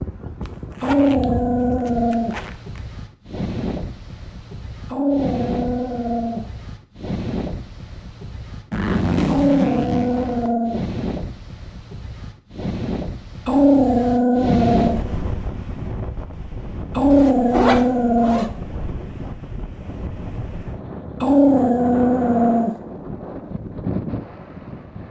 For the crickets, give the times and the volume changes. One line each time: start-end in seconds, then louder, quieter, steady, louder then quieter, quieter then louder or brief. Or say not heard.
not heard.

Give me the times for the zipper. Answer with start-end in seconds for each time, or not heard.
0.5-2.8, 8.7-10.6, 17.1-18.5.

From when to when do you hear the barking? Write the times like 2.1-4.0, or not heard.
0.8-2.4, 4.8-6.5, 9.2-10.8, 13.4-15.0, 16.9-18.5, 21.2-22.8.